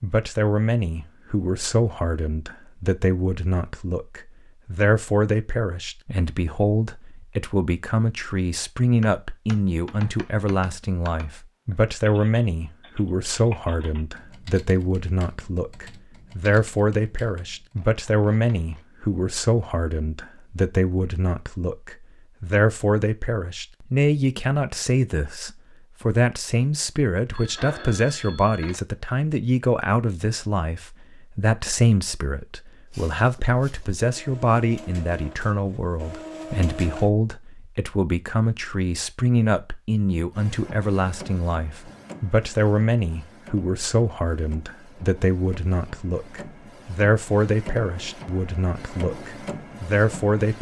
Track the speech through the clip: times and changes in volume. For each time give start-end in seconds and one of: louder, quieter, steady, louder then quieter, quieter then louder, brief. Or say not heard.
0.0-50.5 steady.